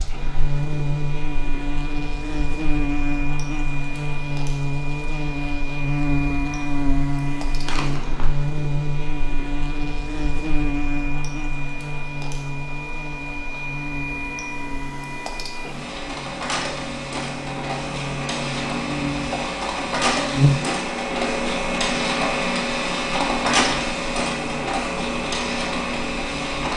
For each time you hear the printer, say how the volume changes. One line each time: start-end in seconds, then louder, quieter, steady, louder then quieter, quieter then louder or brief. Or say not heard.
0.0-26.7 louder.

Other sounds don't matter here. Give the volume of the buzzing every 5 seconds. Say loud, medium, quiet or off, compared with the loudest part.
loud, loud, medium, medium, loud, quiet.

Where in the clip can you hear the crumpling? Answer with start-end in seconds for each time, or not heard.
7.7-8.3.